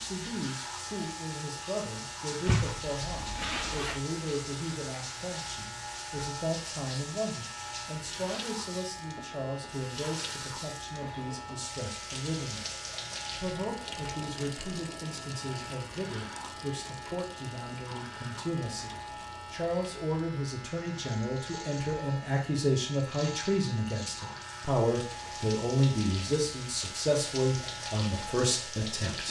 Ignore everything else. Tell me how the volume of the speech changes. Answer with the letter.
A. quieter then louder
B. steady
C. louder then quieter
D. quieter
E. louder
E.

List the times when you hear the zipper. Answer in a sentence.
The zipper can be heard from 2.5 to 4.0 s.